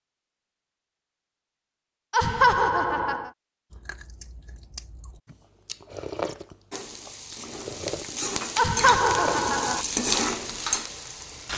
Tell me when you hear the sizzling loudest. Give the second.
10 s.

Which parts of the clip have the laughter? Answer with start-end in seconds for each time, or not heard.
2.1-3.3, 8.6-9.8.